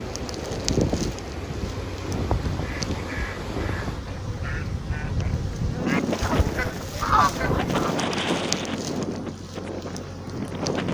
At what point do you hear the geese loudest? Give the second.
7 s.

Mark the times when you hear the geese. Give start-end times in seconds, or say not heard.
2.6-8.0.